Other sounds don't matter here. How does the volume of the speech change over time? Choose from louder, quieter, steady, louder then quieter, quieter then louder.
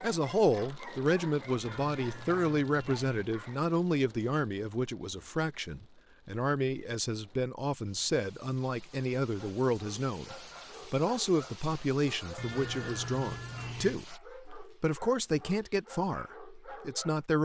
steady.